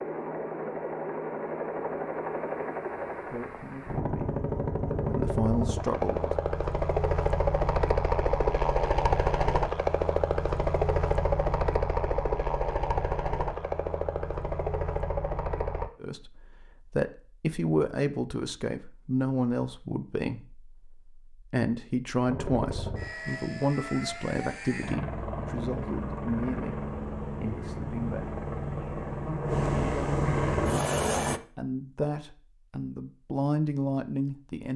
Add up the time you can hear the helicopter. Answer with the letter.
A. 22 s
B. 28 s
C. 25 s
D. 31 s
C.